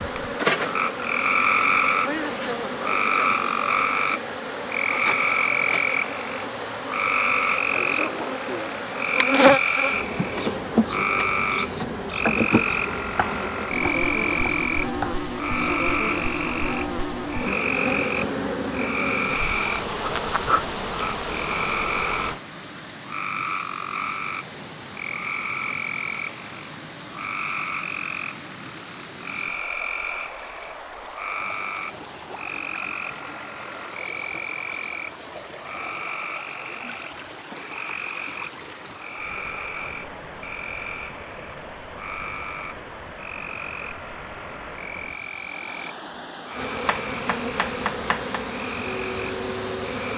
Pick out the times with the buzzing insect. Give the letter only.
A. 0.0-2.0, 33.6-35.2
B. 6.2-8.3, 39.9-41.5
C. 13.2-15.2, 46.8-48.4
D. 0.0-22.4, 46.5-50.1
D.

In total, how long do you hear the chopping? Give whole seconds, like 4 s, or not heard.
4 s.